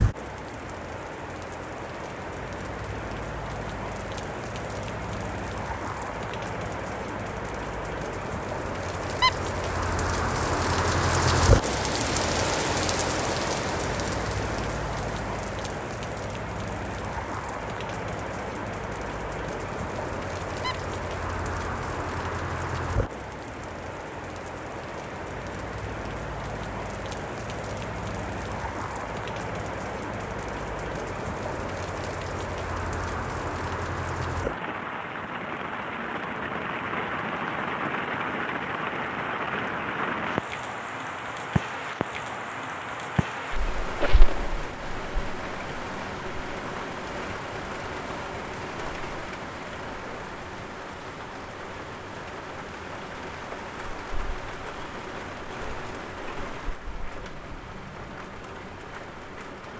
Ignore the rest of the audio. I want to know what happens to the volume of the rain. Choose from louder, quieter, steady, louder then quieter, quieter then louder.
quieter.